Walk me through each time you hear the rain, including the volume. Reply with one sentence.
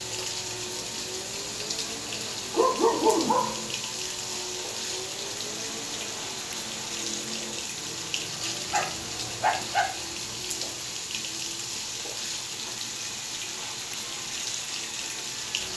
You can hear the rain from 0.0 to 15.7 s, at a steady volume.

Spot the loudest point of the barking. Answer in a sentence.
The loudest moment of the barking is at 3 seconds.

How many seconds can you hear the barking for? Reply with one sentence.
The barking can be heard for 3 seconds in total.